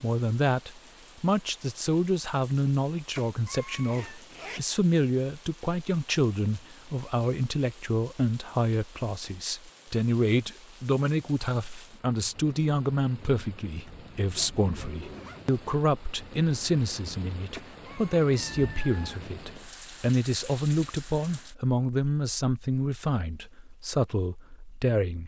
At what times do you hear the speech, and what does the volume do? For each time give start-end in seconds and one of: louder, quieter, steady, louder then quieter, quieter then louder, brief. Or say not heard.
0.0-25.2 steady.